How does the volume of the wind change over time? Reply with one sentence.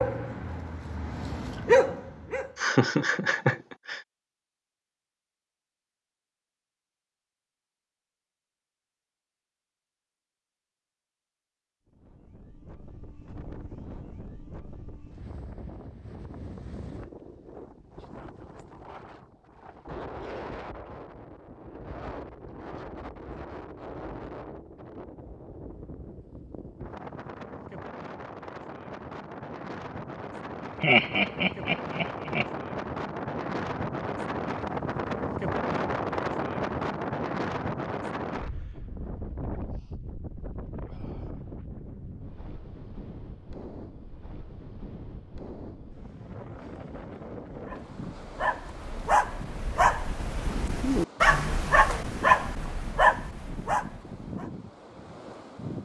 The volume of the wind goes up, then down.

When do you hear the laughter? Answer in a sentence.
You can hear the laughter from 2.5 to 4.0 s and from 30.8 to 32.5 s.